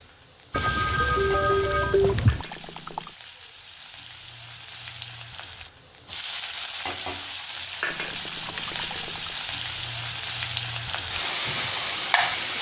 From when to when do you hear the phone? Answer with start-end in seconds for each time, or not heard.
0.5-2.5.